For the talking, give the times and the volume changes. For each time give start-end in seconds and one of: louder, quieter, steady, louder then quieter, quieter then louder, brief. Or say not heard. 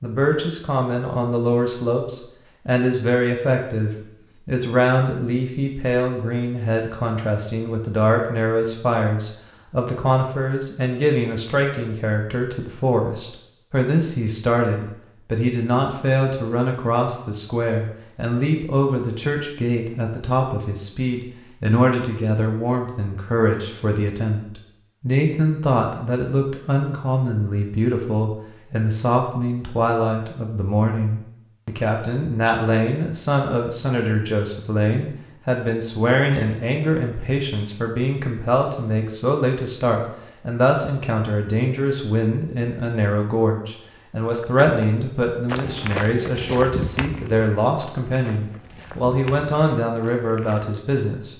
0.0-51.3 steady.